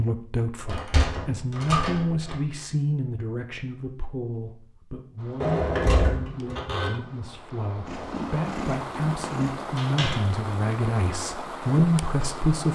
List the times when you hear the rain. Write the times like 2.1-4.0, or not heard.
5.2-12.6.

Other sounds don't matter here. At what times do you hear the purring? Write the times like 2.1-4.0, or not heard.
7.8-9.7.